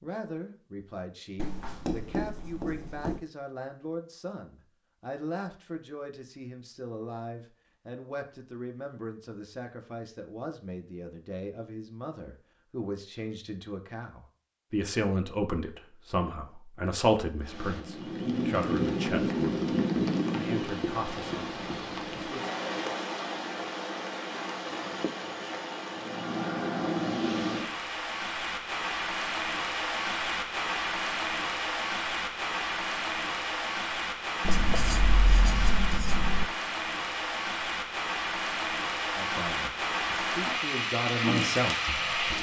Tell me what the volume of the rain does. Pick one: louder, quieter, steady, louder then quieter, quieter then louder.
steady.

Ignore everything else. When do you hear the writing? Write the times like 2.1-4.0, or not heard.
1.4-3.2, 20.8-22.3, 34.4-36.5.